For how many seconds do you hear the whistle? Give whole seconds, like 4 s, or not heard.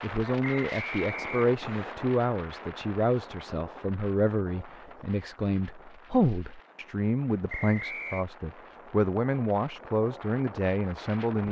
2 s.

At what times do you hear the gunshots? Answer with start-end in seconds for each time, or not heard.
not heard.